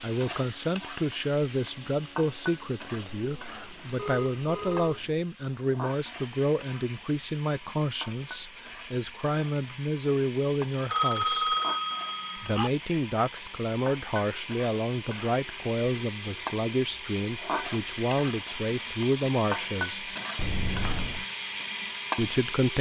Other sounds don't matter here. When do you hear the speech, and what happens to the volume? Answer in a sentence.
The speech can be heard from 0.0 to 11.4 s, at a steady volume; from 12.3 to 20.1 s, at a steady volume; and briefly from 22.1 to 22.7 s.